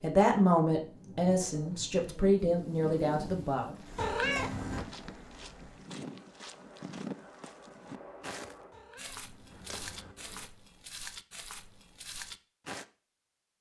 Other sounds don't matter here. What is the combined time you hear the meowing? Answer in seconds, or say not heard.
3 s.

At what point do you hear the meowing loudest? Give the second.
4 s.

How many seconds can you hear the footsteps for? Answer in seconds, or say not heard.
9 s.